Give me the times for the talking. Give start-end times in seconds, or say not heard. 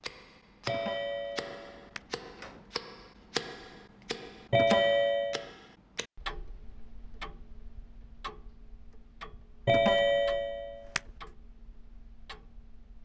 not heard.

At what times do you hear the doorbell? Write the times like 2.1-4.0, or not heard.
0.7-2.6, 4.5-5.5, 9.7-11.0.